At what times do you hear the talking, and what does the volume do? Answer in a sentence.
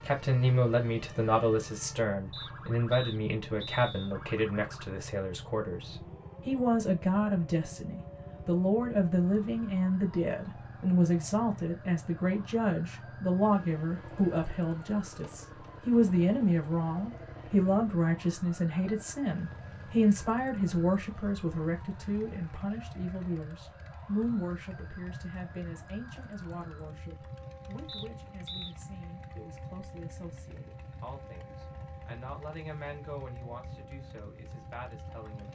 The talking can be heard from 0.0 to 35.5 s, getting quieter.